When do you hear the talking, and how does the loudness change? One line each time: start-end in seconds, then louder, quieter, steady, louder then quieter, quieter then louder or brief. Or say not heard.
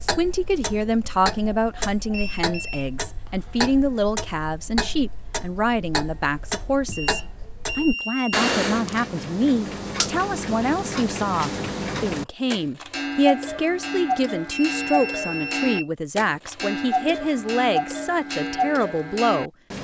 0.0-19.5 steady.